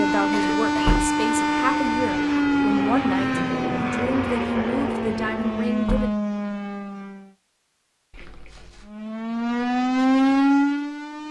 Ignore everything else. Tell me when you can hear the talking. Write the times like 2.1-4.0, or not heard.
0.0-6.1.